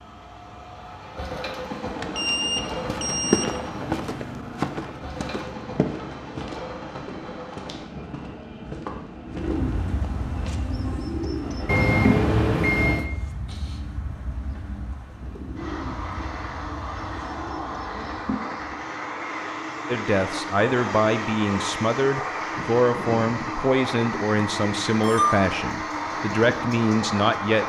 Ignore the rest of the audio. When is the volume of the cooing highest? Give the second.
12 s.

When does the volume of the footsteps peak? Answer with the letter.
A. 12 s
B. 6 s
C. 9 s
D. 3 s
D.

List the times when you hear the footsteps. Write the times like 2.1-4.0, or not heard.
2.5-10.8.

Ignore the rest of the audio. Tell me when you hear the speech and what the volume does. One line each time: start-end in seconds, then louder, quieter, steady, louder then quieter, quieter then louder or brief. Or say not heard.
19.9-27.6 steady.